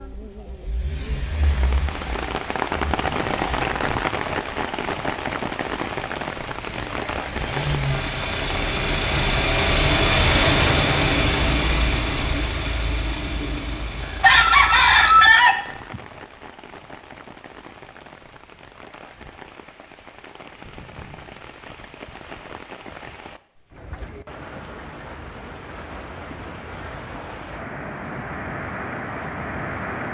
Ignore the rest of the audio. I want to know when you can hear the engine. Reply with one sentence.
The engine can be heard from 0.0 to 3.8 s and from 6.5 to 15.4 s.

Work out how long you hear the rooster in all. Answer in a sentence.
You can hear the rooster for 2 seconds altogether.